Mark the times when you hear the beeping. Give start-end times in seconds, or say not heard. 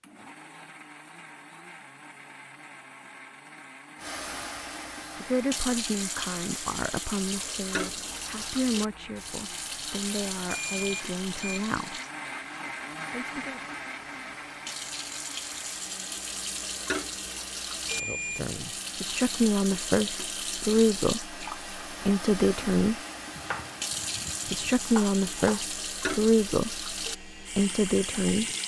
10.4-11.6, 17.9-18.4.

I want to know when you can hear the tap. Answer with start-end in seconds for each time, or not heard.
4.0-28.6.